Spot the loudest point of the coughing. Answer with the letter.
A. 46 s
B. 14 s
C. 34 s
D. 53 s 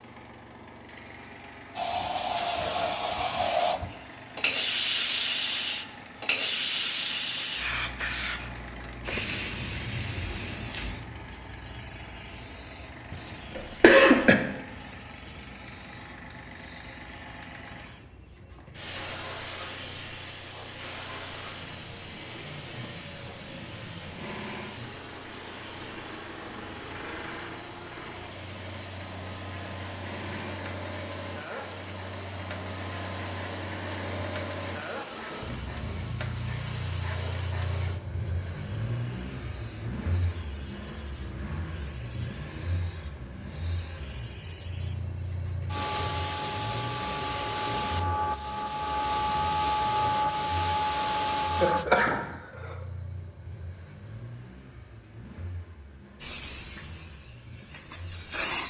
B.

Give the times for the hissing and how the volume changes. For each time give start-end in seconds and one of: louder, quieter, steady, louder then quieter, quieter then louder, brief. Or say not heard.
1.8-51.9 quieter then louder
56.2-58.6 brief.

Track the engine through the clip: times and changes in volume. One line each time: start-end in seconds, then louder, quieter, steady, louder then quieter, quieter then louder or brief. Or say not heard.
0.0-58.5 louder then quieter.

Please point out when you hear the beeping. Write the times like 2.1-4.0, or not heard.
not heard.